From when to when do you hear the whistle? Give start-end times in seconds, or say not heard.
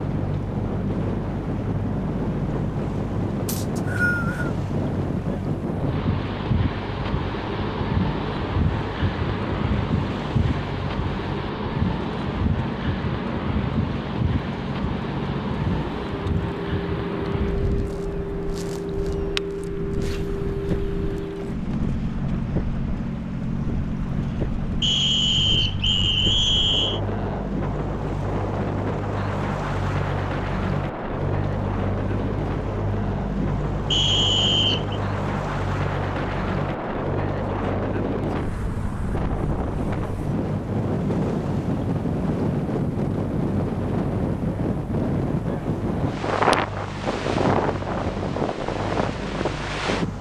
3.5-4.5, 24.8-27.0, 33.9-35.0.